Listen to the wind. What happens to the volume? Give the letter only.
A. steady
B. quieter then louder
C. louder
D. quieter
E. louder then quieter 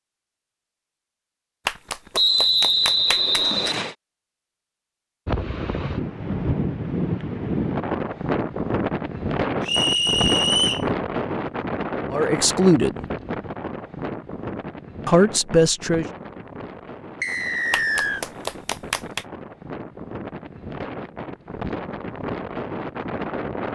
B.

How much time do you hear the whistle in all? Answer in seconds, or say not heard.
4 s.